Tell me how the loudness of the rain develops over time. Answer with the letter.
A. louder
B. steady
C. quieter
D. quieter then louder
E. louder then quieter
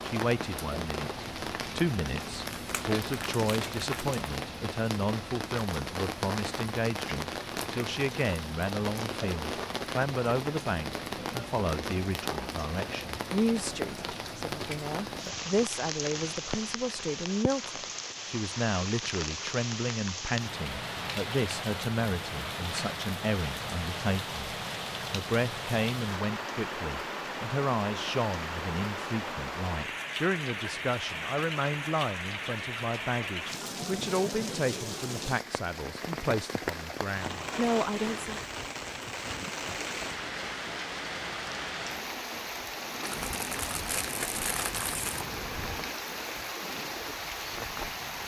B.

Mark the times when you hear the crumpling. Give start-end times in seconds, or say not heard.
2.0-4.2, 43.0-45.2.